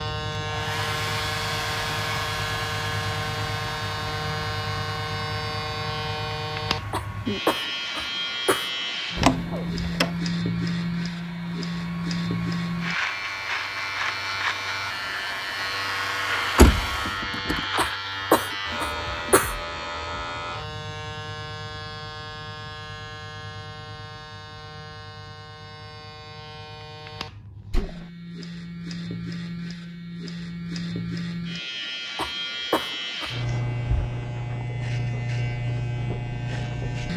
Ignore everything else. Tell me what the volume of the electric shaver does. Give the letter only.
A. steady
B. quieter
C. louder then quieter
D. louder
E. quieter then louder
E.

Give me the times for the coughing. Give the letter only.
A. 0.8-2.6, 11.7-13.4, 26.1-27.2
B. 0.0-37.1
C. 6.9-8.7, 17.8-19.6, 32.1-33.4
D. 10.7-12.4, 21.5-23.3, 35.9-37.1
C.